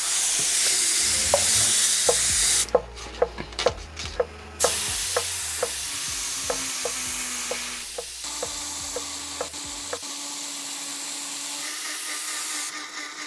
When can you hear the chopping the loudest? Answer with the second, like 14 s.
3 s.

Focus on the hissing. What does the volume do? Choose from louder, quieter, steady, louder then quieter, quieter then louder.
quieter.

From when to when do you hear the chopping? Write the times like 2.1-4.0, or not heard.
1.0-10.0.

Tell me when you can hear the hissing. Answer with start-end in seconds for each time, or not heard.
0.0-13.2.